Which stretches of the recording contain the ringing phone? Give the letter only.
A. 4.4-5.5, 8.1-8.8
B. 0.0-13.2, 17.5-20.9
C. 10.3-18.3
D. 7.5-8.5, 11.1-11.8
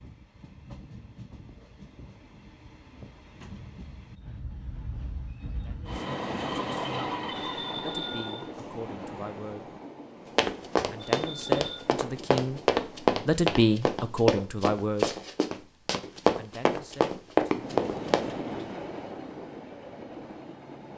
D.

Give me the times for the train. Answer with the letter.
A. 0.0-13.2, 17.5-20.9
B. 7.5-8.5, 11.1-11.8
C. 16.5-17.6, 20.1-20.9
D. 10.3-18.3
A.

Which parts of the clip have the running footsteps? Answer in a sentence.
You can hear the running footsteps from 10.3 to 18.3 s.